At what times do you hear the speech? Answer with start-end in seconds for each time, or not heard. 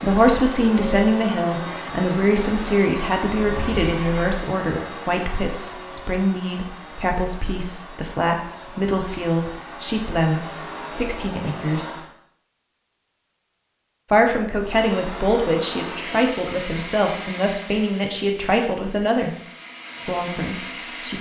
0.0-11.9, 14.1-19.4, 20.1-21.1.